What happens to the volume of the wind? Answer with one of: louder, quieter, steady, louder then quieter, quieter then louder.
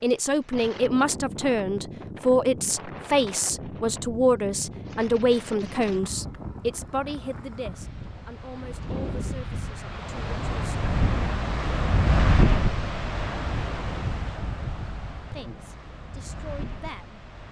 louder then quieter.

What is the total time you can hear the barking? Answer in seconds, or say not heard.
not heard.